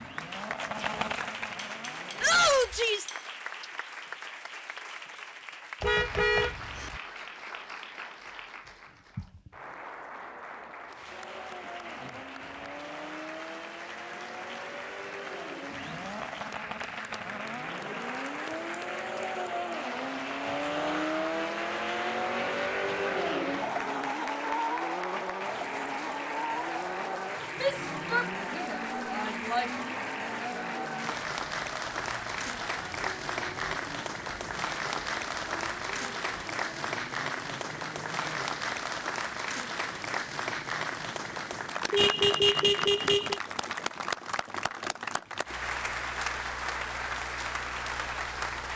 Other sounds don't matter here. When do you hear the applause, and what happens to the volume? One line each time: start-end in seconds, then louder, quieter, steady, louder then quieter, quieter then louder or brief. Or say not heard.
0.0-48.7 louder.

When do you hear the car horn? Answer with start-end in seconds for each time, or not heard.
5.8-7.0, 41.9-43.4.